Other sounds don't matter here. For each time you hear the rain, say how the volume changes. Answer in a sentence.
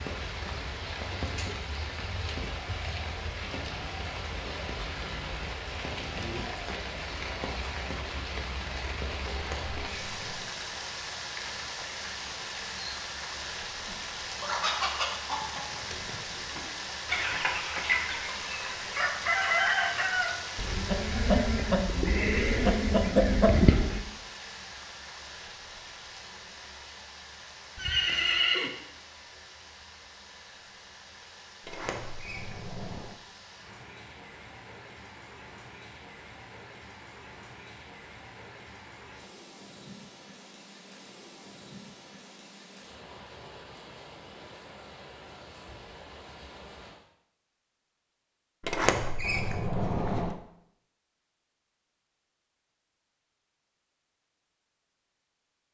You can hear the rain from 0.0 to 47.0 s, getting quieter.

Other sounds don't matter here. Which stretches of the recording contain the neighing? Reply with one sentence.
The neighing can be heard from 27.8 to 28.7 s.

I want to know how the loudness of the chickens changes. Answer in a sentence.
The volume of the chickens goes up.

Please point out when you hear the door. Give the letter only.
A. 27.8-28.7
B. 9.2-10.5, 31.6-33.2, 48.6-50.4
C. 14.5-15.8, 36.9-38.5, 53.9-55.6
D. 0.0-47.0
B.